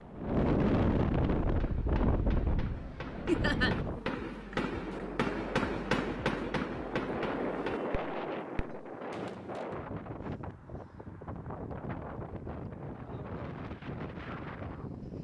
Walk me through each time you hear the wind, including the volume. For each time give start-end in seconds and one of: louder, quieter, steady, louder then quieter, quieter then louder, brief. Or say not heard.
0.0-15.2 quieter.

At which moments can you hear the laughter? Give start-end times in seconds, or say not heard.
3.2-3.8.